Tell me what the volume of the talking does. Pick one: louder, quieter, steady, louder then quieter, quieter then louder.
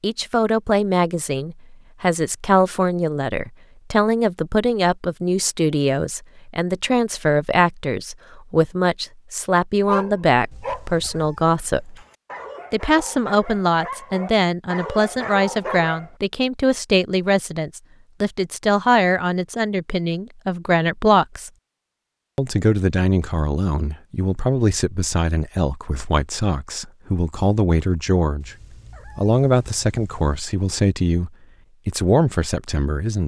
steady.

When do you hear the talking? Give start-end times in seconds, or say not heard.
0.0-11.9, 12.7-21.5, 22.4-28.6, 29.1-33.2.